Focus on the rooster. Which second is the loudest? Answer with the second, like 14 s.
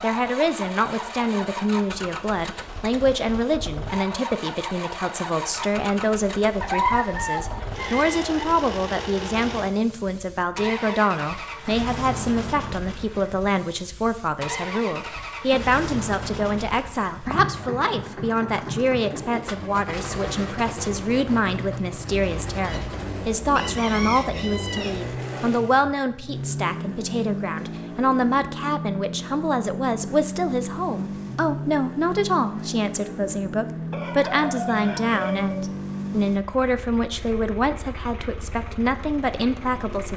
7 s.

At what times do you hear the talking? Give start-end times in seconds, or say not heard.
0.0-40.1.